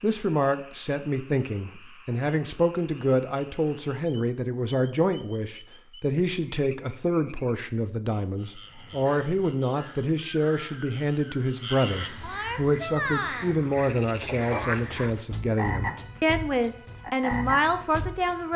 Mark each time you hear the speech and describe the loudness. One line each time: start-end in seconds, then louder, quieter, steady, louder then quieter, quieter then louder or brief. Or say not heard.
0.0-18.5 steady.